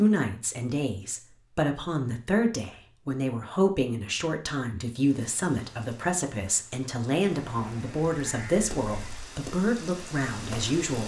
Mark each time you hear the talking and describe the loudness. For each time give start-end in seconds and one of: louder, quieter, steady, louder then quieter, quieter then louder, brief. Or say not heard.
0.0-11.0 steady.